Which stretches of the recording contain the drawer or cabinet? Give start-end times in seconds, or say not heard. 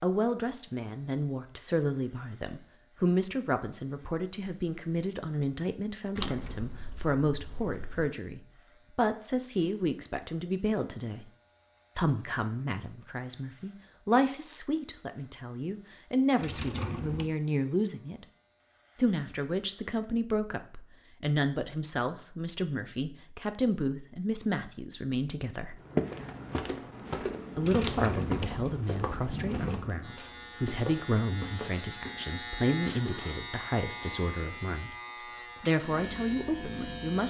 6.2-8.1, 16.4-17.4, 27.6-29.9.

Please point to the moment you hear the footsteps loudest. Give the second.
26 s.